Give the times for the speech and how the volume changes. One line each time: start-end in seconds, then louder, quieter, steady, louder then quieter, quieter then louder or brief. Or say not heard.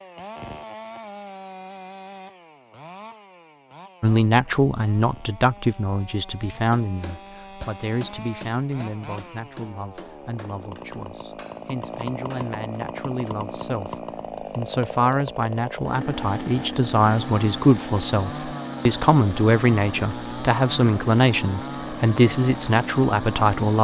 4.0-23.7 quieter then louder.